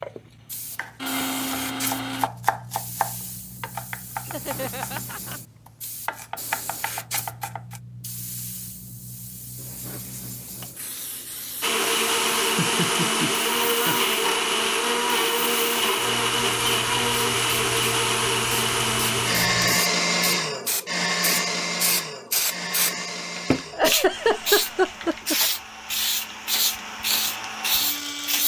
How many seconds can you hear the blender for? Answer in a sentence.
You can hear the blender for 19 seconds altogether.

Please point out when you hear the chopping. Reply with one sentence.
You can hear the chopping from 0.8 to 7.8 s.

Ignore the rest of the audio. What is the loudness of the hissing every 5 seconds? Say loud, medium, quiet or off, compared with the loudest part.
quiet, quiet, quiet, medium, loud, loud.